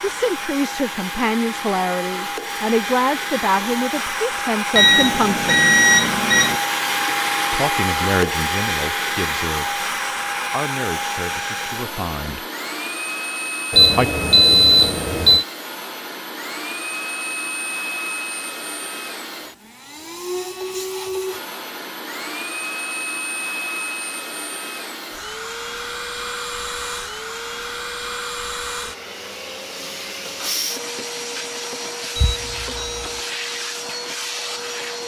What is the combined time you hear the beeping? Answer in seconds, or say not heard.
5 s.